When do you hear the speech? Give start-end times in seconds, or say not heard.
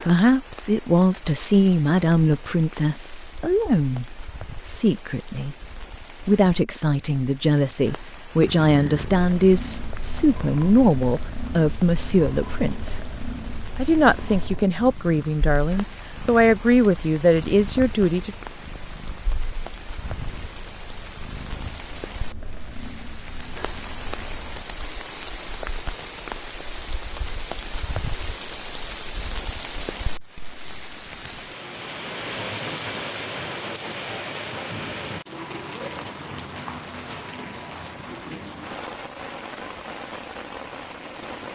0.0-5.5, 6.2-13.1, 13.8-18.4.